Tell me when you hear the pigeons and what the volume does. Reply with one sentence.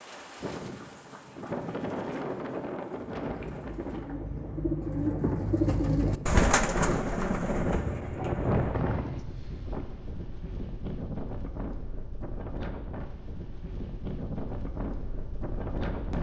The pigeons can be heard from 3.0 to 8.9 s, getting louder then quieter.